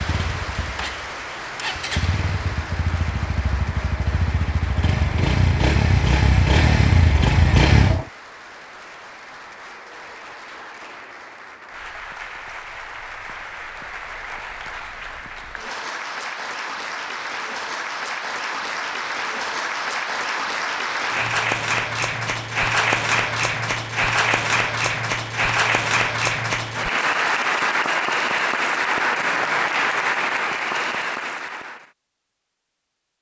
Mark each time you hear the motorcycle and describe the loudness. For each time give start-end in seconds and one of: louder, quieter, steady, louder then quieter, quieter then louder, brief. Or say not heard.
0.0-8.1 louder.